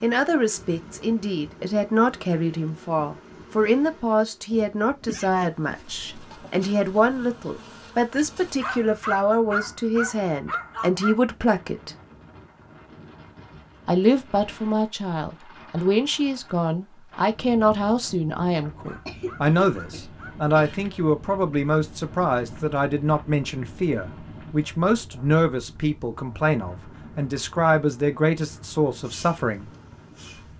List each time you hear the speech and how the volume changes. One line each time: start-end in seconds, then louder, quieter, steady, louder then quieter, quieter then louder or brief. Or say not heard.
0.0-11.9 steady
13.8-29.7 steady.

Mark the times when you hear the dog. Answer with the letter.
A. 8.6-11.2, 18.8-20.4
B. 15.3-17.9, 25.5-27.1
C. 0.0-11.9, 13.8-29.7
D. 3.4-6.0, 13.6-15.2
A.